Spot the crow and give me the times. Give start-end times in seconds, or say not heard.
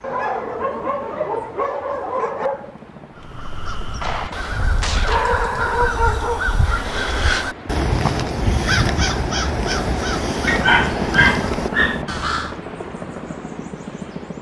3.1-12.7.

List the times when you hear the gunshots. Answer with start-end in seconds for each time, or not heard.
4.0-5.4.